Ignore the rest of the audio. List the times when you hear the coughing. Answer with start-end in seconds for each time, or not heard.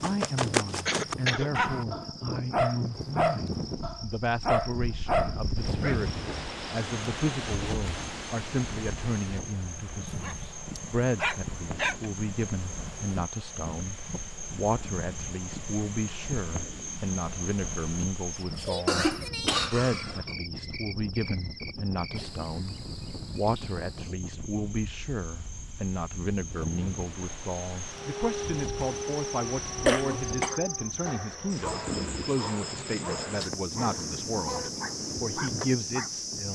0.8-1.5, 18.9-20.2, 29.9-30.6.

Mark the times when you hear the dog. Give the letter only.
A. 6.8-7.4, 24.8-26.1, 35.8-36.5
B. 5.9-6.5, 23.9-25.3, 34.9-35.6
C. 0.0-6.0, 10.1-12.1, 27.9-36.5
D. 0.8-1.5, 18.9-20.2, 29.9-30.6
C.